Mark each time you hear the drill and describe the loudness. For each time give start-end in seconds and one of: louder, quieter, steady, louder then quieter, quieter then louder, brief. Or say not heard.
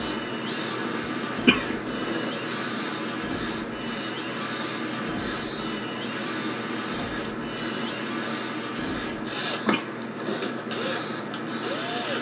0.0-12.1 steady.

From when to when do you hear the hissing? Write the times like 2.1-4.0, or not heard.
0.0-12.1.